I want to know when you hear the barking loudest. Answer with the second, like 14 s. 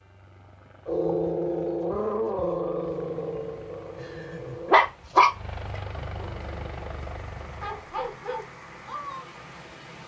5 s.